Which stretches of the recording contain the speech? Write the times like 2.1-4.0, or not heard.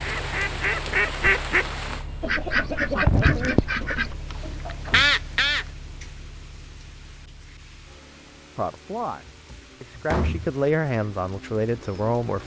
8.6-12.4.